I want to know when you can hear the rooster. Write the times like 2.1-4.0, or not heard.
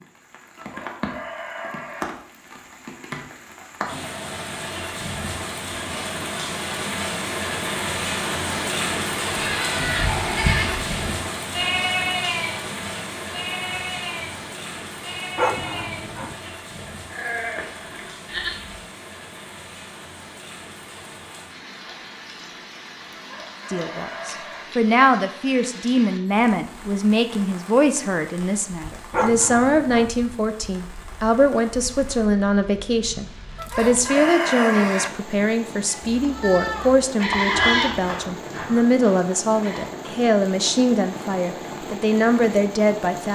0.6-2.1, 23.1-24.6, 33.5-35.1.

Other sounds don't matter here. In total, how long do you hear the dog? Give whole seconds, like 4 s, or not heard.
2 s.